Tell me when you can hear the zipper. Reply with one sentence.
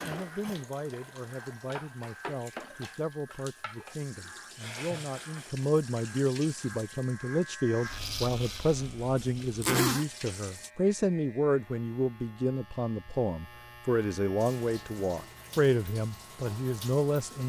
You can hear the zipper from 9.2 to 10.1 s.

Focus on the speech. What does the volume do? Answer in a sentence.
The loudness of the speech goes up.